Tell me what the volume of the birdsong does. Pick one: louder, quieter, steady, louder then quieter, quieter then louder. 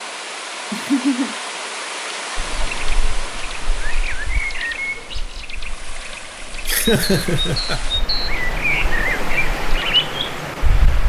louder.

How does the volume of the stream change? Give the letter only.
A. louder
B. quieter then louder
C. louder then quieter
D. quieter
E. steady
B.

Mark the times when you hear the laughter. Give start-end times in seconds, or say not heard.
0.7-1.4, 6.7-7.8.